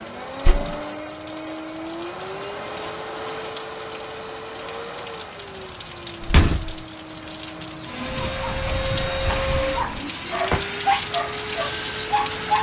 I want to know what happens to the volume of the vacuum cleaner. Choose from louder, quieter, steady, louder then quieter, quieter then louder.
quieter then louder.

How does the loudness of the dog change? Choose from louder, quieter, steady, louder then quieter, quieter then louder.
louder then quieter.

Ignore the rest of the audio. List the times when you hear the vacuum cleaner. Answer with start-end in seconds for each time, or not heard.
0.0-12.5.